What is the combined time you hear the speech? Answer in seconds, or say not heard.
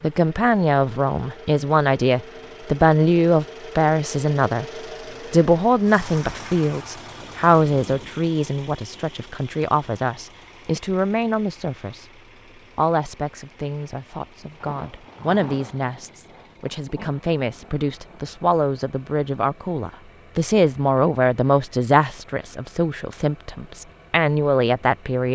24 s.